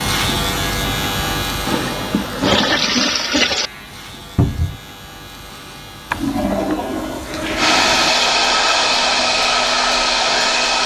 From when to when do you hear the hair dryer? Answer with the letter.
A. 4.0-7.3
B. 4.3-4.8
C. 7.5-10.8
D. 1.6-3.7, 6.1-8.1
C.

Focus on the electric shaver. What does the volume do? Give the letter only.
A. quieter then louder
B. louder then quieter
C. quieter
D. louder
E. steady
C.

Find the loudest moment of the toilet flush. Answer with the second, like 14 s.
3 s.